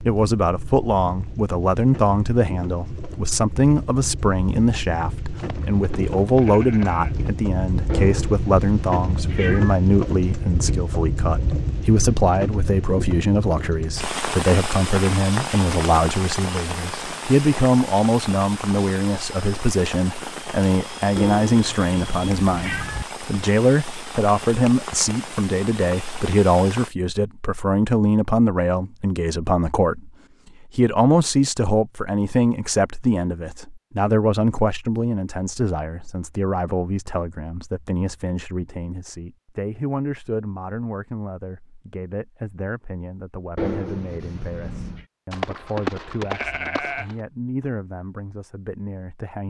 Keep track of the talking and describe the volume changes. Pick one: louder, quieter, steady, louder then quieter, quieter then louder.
quieter.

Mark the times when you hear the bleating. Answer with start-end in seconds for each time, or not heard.
5.3-7.3, 45.3-47.2.